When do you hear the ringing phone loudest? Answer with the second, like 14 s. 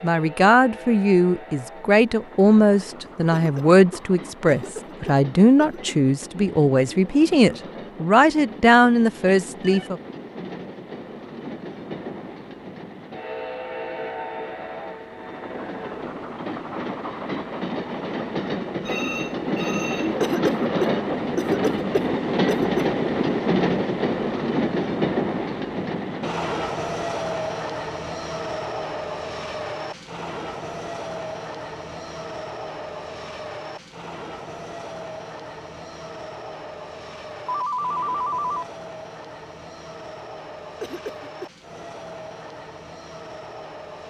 38 s.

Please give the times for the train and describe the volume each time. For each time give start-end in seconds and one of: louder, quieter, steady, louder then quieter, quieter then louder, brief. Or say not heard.
0.0-44.0 louder then quieter.